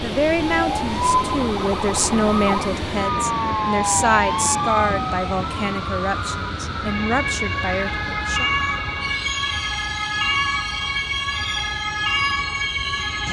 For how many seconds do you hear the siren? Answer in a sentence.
The siren can be heard for 13 seconds in total.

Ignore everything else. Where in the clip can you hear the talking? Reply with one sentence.
The talking can be heard from 0.0 to 8.5 s.